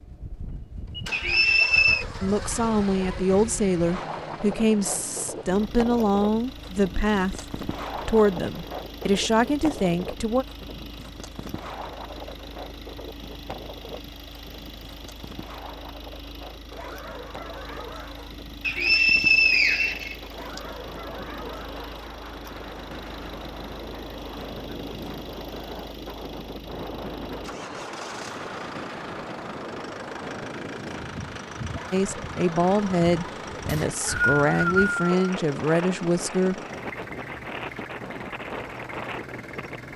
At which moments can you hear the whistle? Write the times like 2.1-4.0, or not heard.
1.1-2.0, 18.6-20.6, 33.6-35.3.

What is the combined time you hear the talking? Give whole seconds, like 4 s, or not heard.
13 s.